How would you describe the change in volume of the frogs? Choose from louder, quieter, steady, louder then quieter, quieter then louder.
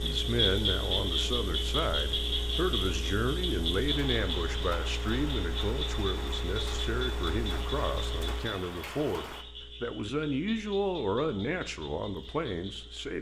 quieter.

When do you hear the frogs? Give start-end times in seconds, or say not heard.
0.0-12.9.